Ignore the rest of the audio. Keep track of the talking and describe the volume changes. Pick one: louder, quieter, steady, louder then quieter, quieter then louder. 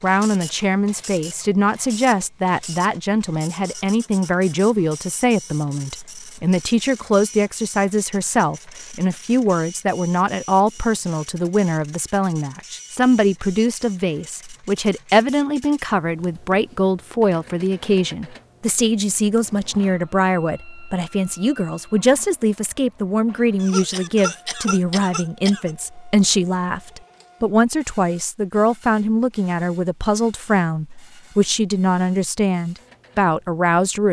steady.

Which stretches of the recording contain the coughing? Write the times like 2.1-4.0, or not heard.
23.6-25.7.